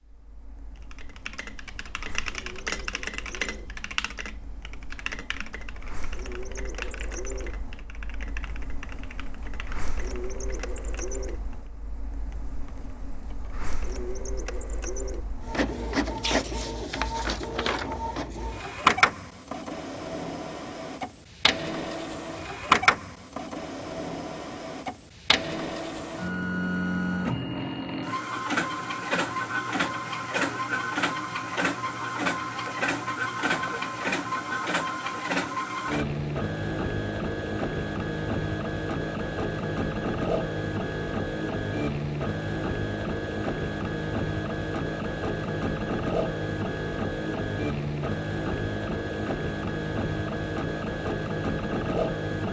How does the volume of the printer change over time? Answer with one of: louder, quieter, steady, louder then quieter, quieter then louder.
louder.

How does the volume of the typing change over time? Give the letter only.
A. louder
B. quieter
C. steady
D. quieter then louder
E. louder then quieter
B.